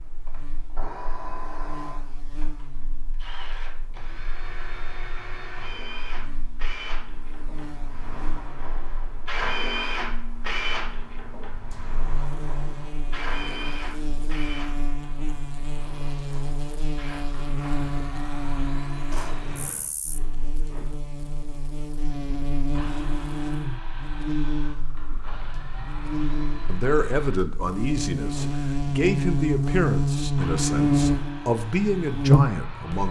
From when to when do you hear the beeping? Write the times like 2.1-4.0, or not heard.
not heard.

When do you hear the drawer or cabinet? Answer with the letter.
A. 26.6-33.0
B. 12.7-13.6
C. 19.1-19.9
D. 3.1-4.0
C.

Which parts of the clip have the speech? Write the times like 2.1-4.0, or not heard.
26.6-33.0.